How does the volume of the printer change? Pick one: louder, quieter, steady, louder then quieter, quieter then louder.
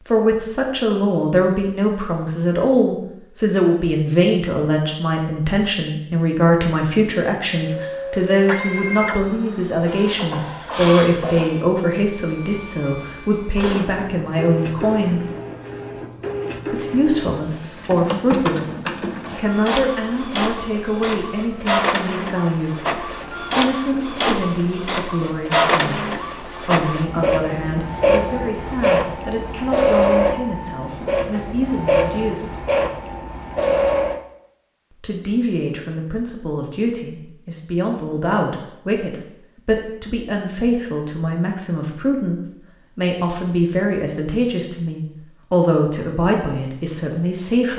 louder.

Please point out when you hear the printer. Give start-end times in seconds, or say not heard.
7.5-34.2.